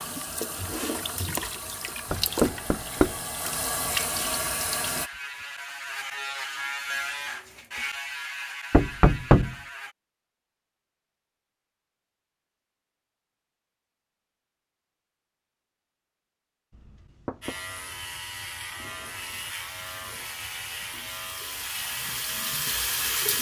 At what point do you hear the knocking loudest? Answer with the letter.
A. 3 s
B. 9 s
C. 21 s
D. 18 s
B.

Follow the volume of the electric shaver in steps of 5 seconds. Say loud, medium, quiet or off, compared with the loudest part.
medium, loud, off, loud, loud.